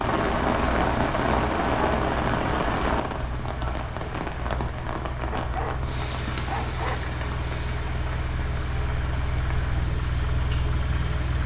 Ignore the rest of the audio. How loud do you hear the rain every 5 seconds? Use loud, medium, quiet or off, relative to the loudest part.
loud, medium, off.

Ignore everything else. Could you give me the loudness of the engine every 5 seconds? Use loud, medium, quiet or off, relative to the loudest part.
medium, loud, loud.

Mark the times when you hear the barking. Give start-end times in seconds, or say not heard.
5.3-7.0.